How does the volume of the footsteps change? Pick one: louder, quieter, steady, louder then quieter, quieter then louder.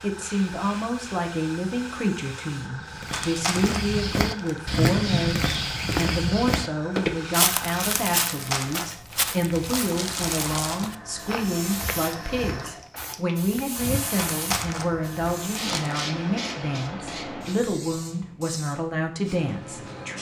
quieter.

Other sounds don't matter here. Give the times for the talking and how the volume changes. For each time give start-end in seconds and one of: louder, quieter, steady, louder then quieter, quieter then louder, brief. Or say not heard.
0.0-20.1 steady.